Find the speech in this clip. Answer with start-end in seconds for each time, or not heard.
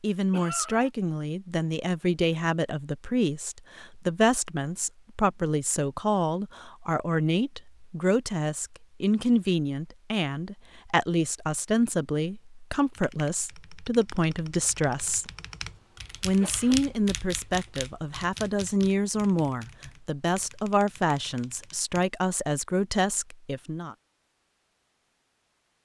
0.0-15.3, 16.2-23.9.